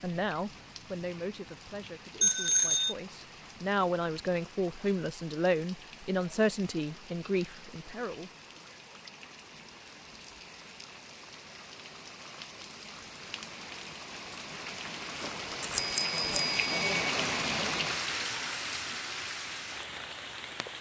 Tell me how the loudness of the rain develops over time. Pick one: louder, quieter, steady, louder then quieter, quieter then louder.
louder.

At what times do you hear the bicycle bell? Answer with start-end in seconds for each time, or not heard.
2.2-3.0, 15.2-16.9.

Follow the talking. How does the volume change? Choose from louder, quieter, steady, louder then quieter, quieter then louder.
quieter then louder.